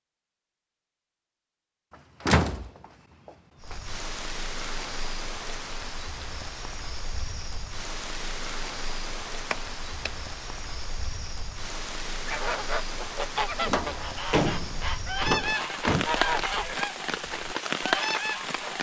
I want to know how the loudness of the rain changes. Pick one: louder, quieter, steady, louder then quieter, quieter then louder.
louder.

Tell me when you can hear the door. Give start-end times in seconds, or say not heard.
2.2-3.8, 9.5-10.1, 13.6-16.1.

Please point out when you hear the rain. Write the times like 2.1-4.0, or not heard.
3.6-18.7.